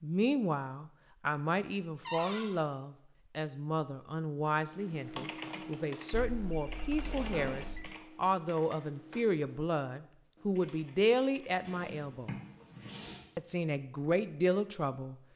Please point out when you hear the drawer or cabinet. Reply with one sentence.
You can hear the drawer or cabinet from 2.0 to 2.5 s, from 6.7 to 7.7 s and from 11.7 to 13.2 s.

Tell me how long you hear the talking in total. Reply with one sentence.
The talking can be heard for 14 seconds in total.